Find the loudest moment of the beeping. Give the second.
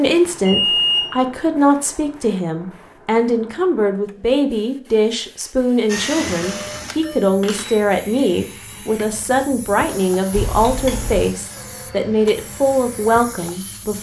1 s.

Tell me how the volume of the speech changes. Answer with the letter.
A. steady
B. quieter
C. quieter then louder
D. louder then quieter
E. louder
A.